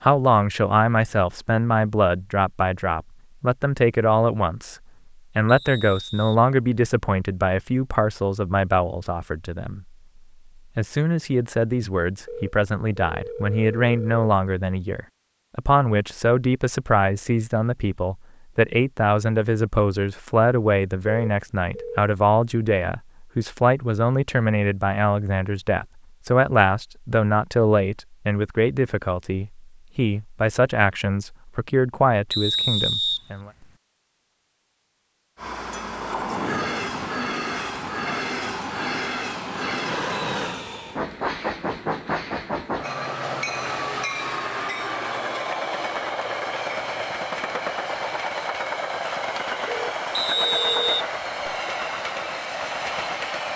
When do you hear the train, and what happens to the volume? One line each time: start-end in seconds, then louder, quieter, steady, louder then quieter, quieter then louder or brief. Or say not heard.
35.4-53.5 steady.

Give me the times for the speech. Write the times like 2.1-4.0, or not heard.
0.0-4.8, 5.3-9.8, 10.8-33.5.